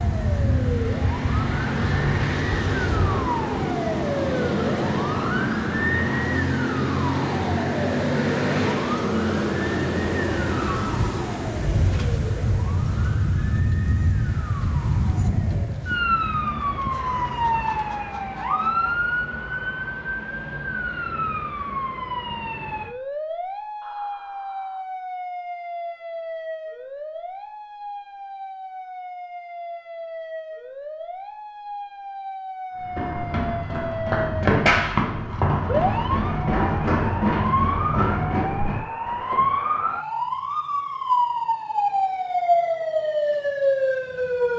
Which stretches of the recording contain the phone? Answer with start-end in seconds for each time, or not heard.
not heard.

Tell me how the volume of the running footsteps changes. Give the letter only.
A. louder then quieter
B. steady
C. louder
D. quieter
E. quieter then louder
A.